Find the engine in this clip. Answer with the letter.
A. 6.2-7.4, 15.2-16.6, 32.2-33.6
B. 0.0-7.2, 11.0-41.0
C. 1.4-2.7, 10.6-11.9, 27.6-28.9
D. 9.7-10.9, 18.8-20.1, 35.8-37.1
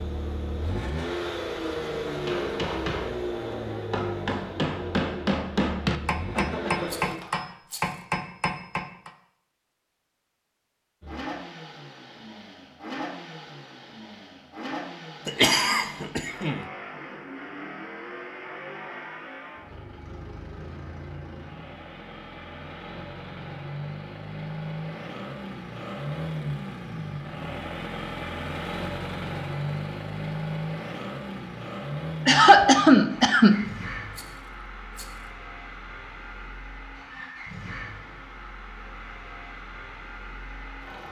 B.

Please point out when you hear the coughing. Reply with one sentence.
The coughing can be heard from 6.2 to 7.4 s, from 15.2 to 16.6 s and from 32.2 to 33.6 s.